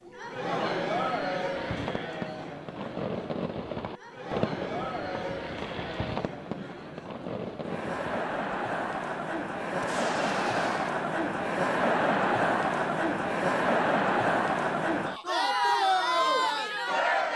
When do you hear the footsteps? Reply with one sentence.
The footsteps can't be heard in this clip.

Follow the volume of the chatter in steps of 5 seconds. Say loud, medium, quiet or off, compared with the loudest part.
medium, medium, loud, loud.